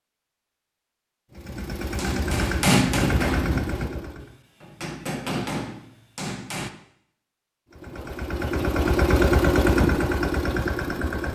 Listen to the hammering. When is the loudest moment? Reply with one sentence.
The volume of the hammering peaks at 3 seconds.